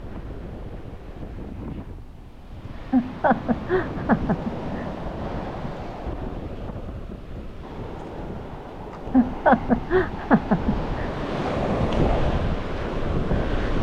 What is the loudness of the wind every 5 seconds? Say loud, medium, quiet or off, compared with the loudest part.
medium, medium, loud.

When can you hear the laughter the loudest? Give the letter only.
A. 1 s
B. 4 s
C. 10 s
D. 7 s
C.